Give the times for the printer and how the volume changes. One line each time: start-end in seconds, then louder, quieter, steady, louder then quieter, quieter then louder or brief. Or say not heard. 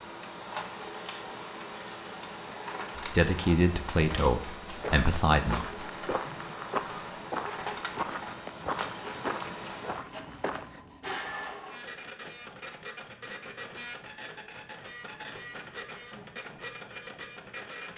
0.0-17.9 steady.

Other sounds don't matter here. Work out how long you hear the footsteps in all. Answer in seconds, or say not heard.
6 s.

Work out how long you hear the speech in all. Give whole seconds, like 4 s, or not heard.
3 s.